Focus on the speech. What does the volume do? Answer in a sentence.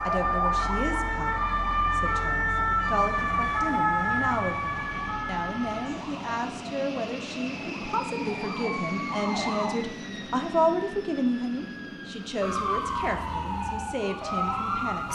The volume of the speech goes up, then down.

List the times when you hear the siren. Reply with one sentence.
The siren can be heard from 0.0 to 9.7 s and from 12.4 to 15.0 s.